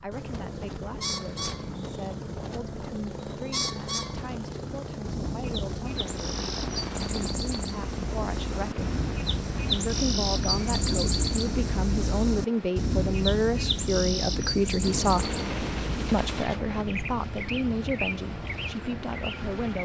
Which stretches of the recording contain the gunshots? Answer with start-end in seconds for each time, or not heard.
14.8-16.9.